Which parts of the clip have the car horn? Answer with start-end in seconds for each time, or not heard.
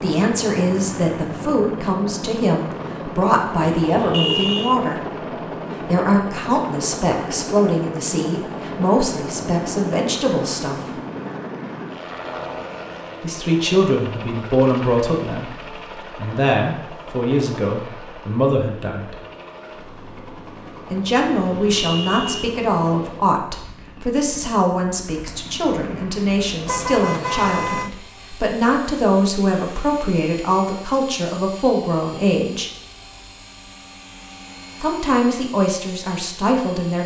3.6-4.8, 21.2-22.5, 26.6-27.9.